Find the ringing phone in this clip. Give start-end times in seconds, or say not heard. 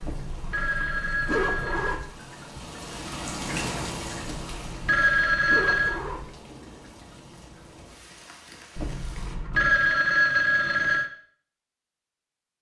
0.5-2.0, 4.8-6.0, 9.5-11.1.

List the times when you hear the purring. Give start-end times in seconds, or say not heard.
not heard.